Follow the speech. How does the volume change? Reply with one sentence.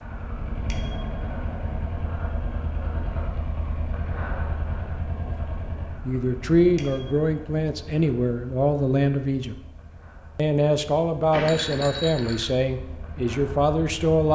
The volume of the speech stays about the same.